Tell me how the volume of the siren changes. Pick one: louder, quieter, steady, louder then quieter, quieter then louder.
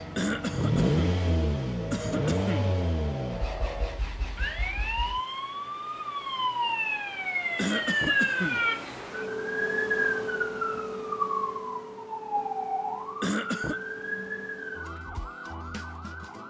louder then quieter.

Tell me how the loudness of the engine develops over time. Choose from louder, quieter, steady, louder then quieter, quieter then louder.
quieter.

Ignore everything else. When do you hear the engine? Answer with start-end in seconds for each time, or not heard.
0.0-5.2.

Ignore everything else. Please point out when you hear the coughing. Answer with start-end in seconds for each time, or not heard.
0.1-1.2, 1.9-2.8, 7.5-8.6, 13.2-13.8.